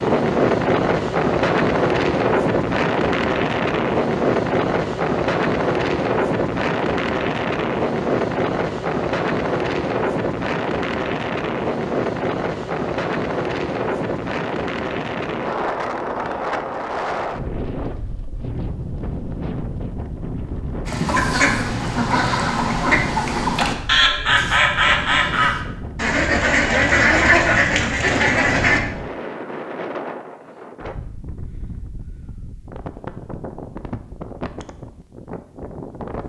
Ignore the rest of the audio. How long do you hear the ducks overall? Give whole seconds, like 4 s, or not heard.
8 s.